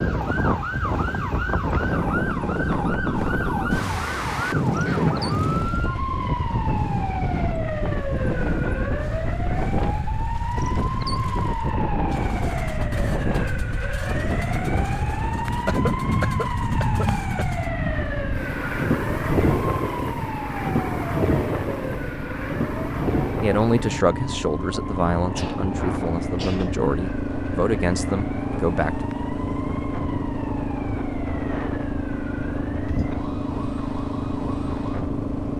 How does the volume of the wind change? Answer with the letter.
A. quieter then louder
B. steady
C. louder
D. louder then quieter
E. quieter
E.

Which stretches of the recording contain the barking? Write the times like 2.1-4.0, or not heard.
not heard.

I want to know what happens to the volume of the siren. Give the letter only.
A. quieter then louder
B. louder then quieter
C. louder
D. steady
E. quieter
E.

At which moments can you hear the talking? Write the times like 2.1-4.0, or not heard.
23.4-29.1.